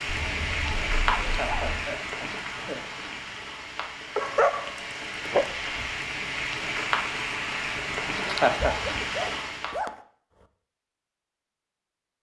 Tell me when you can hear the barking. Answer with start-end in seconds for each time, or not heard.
0.1-1.9, 4.2-5.5, 8.4-9.9.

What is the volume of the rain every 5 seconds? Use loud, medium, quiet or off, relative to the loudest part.
loud, loud, off.